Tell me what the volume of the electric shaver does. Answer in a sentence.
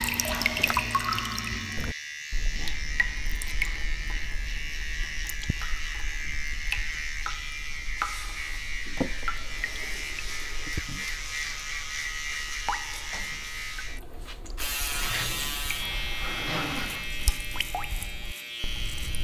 The loudness of the electric shaver stays about the same.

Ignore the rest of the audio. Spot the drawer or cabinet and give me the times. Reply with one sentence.
The drawer or cabinet can be heard from 0.2 to 0.8 s, from 8.8 to 10.8 s and from 14.9 to 17.4 s.